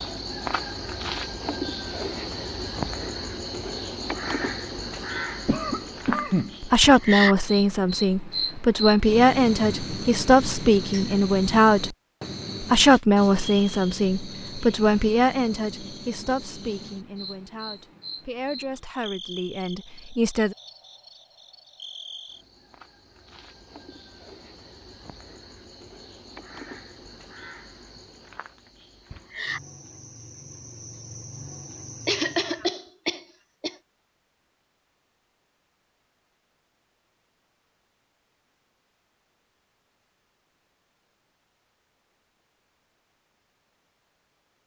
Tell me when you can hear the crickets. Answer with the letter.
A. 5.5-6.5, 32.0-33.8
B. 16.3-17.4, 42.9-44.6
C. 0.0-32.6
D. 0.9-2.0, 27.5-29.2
C.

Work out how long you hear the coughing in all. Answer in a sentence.
The coughing can be heard for 3 seconds in total.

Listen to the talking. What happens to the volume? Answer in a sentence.
The volume of the talking goes down.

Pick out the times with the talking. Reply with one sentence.
You can hear the talking from 6.6 to 11.9 s and from 12.6 to 20.6 s.